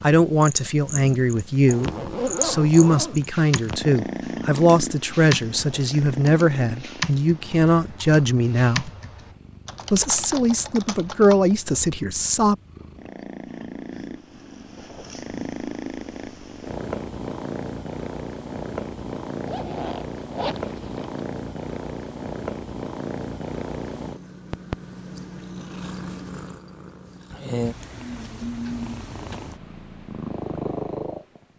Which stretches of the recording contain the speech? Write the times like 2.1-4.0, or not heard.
0.0-8.9, 9.9-12.6.